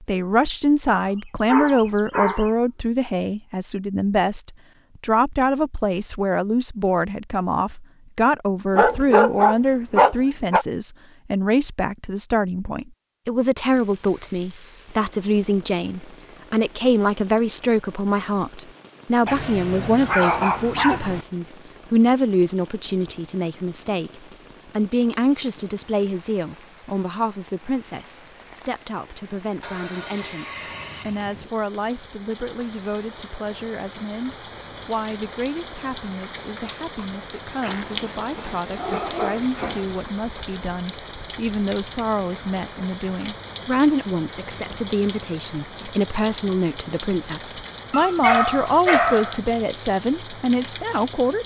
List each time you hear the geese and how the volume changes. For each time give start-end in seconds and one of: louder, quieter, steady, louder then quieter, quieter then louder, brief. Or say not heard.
not heard.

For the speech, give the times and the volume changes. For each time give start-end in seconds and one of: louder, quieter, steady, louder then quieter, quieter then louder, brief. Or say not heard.
0.0-51.4 quieter then louder.